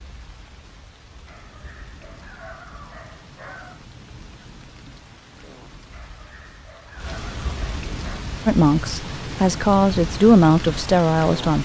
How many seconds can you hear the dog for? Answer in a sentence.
You can hear the dog for 5 seconds altogether.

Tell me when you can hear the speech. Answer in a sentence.
You can hear the speech from 8.4 to 11.6 s.